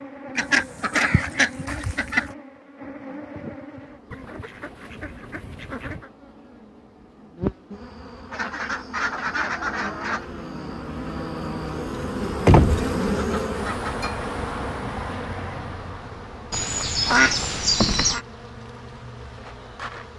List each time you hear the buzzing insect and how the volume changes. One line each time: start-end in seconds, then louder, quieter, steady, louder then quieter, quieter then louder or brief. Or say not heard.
0.0-20.1 louder then quieter.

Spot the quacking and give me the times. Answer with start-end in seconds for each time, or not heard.
0.3-2.3, 4.1-6.1, 8.3-10.3, 12.4-14.3, 16.5-18.2.